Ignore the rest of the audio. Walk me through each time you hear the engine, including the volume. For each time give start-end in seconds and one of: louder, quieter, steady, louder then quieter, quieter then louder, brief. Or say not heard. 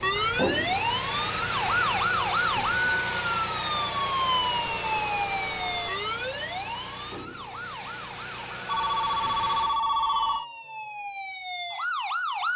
0.0-9.8 quieter.